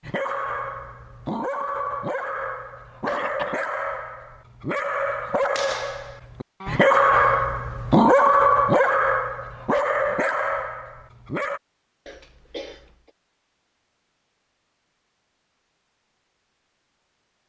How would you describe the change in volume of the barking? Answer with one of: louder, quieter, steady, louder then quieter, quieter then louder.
louder then quieter.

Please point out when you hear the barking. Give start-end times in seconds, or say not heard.
0.0-11.6.